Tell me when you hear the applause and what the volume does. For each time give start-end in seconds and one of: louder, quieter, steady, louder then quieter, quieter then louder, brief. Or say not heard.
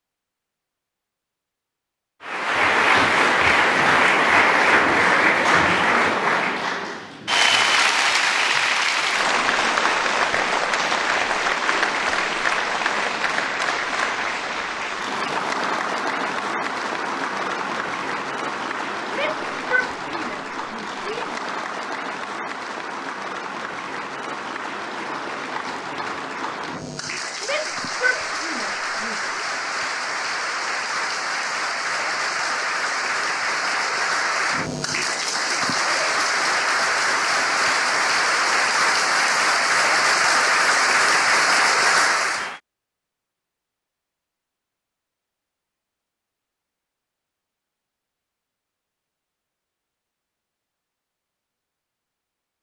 2.2-42.6 quieter then louder.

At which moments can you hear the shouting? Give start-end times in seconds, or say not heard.
19.1-21.4, 27.4-29.3.